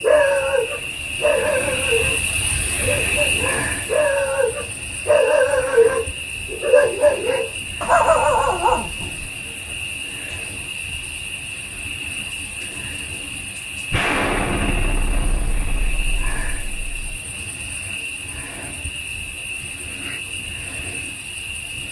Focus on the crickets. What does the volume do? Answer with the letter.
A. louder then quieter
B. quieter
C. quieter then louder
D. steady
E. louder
B.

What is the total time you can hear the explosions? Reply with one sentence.
The explosions can be heard for 3 seconds in total.